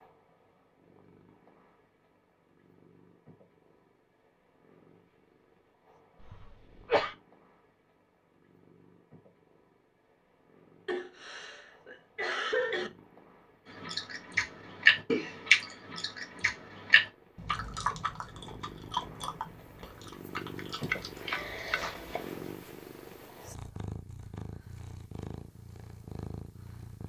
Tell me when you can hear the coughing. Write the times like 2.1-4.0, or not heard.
6.2-7.2, 10.8-12.9, 20.9-22.3.